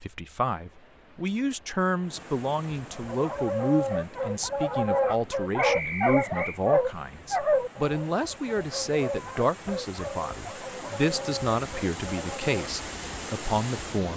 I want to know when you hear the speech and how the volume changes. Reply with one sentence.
You can hear the speech from 0.0 to 14.1 s, at a steady volume.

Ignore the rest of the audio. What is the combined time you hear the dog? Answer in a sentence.
You can hear the dog for 10 seconds altogether.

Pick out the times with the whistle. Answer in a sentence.
The whistle can be heard from 5.5 to 6.6 s.